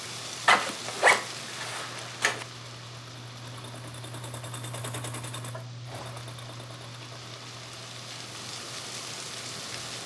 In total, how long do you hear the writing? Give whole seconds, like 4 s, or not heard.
not heard.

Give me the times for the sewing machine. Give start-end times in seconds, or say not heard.
0.0-10.0.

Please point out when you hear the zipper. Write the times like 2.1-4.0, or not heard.
0.5-2.5, 5.8-6.2.